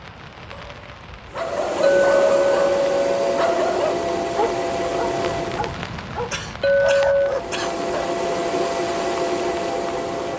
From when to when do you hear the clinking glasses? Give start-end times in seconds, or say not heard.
1.8-3.3, 6.6-7.3.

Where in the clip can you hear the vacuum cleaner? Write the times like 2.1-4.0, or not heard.
1.3-5.8, 7.2-10.3.